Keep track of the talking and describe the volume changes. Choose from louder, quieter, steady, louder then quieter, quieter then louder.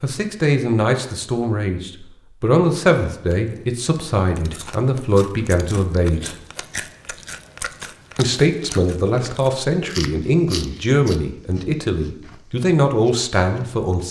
steady.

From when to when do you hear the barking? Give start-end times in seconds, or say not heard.
not heard.